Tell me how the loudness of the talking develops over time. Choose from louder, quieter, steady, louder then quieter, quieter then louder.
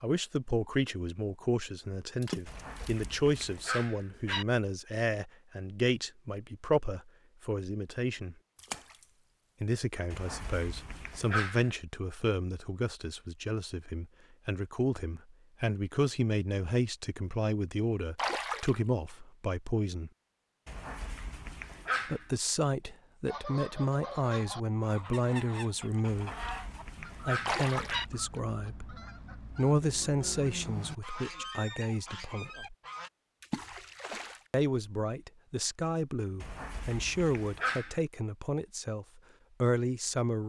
steady.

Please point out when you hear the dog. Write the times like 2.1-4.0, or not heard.
2.5-4.5, 10.1-11.8, 20.6-22.3, 26.1-28.1, 36.4-38.0.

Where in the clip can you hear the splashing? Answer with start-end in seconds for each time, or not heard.
2.2-3.6, 8.6-9.1, 18.1-19.1, 27.4-28.1, 33.4-34.4.